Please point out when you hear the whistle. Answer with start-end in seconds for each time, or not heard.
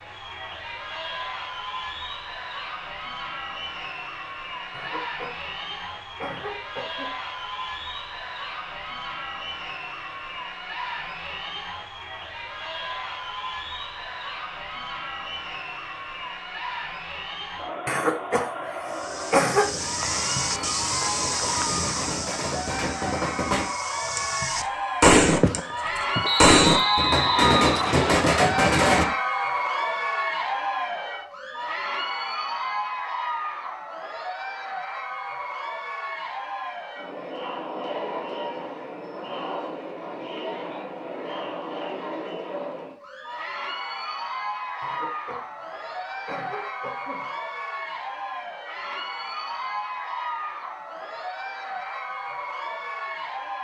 26.2-28.2.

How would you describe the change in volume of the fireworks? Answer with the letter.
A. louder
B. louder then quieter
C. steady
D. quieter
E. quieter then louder
A.